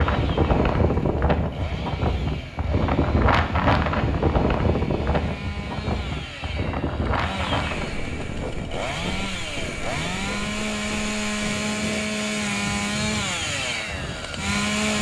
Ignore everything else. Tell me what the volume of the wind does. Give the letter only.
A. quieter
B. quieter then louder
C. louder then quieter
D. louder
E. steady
A.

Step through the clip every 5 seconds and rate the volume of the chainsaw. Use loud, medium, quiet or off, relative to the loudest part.
quiet, medium, loud.